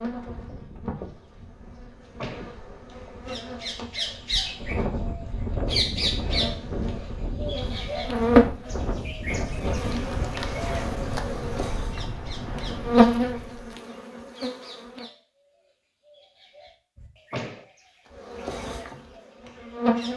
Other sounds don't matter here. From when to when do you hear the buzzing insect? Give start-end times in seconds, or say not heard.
0.0-15.1, 18.1-20.1.